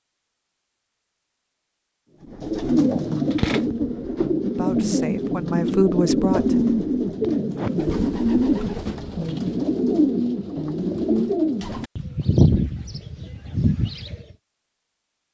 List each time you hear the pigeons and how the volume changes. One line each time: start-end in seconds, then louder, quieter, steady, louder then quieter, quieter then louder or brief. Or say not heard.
2.2-14.3 steady.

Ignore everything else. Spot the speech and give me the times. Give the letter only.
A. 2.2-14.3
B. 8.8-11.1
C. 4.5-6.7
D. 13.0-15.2
C.